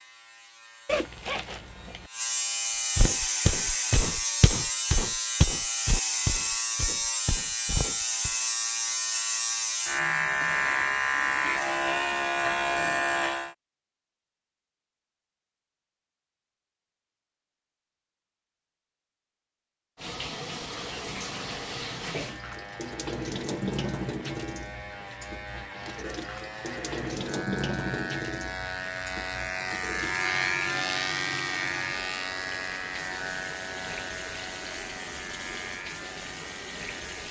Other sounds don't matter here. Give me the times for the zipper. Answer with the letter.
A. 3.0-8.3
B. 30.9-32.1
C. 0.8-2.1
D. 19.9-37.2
C.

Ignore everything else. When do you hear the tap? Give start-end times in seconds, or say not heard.
19.9-37.2.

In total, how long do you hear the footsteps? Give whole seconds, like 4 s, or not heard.
5 s.